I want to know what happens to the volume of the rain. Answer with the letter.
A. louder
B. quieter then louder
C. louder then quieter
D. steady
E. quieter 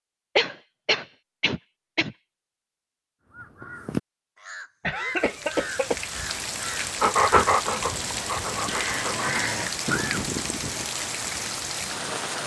D.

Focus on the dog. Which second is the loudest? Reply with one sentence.
The loudest moment of the dog is at 7 seconds.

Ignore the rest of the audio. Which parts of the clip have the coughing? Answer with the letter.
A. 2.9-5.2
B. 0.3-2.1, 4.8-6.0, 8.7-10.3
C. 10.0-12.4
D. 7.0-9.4
B.